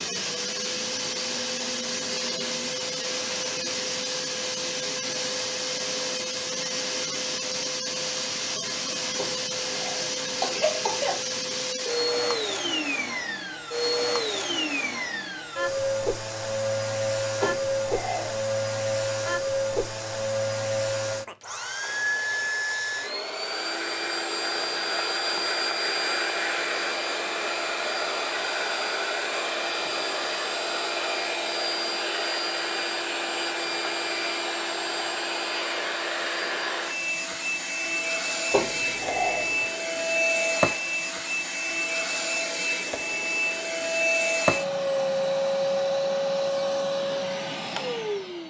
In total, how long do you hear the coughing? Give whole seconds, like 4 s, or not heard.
4 s.